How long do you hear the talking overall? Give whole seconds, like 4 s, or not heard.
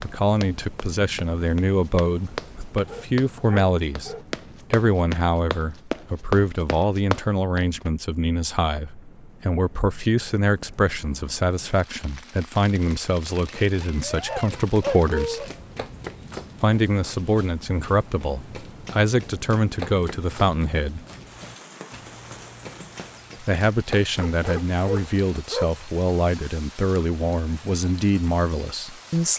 26 s.